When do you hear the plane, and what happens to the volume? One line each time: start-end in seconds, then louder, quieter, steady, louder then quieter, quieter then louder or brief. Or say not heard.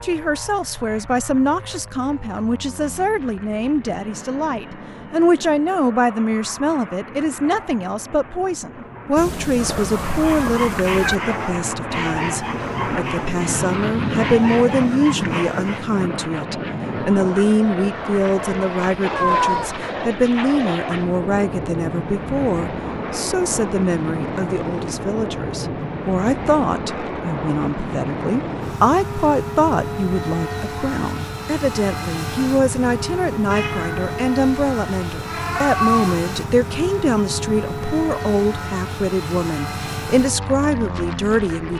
0.0-41.7 louder.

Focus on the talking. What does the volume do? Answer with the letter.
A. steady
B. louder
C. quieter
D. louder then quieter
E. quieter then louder
A.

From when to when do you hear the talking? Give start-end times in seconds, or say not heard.
0.0-41.7.